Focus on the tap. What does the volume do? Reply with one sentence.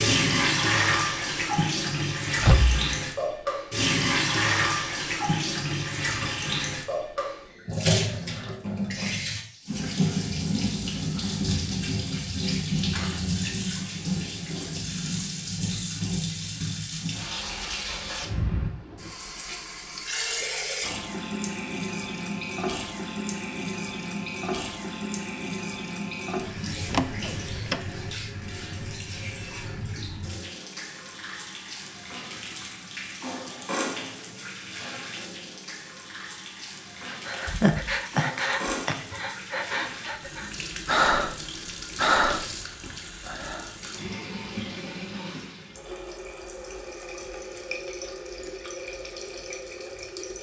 The loudness of the tap goes down.